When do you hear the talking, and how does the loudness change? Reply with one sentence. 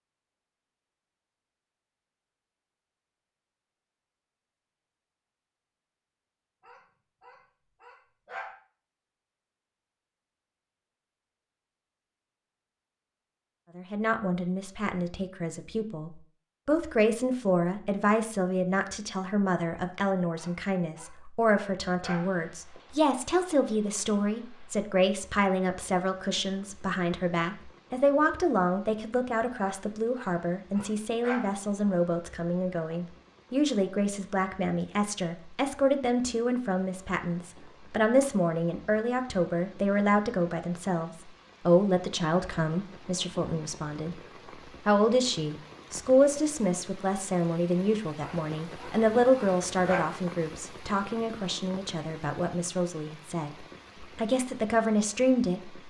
The talking can be heard from 13.8 to 55.8 s, at a steady volume.